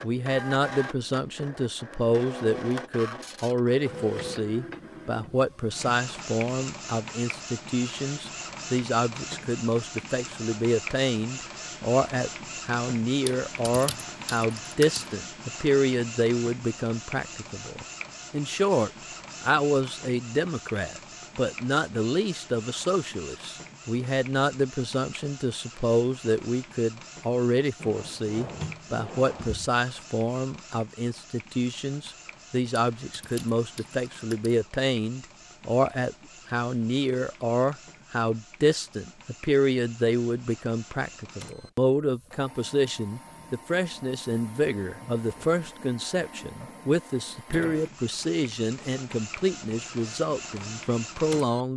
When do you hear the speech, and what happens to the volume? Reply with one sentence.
You can hear the speech from 0.0 to 51.7 s, at a steady volume.